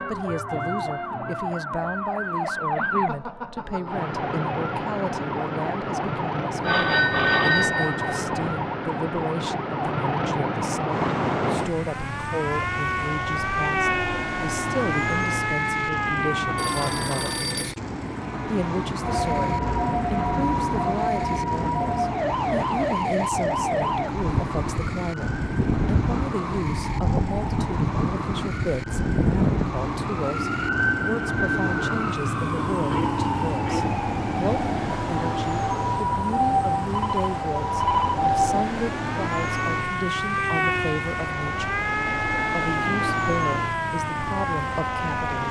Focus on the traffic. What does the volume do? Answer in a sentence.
The loudness of the traffic stays about the same.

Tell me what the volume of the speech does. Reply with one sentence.
The volume of the speech stays about the same.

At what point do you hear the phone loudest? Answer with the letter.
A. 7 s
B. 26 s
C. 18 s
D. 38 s
A.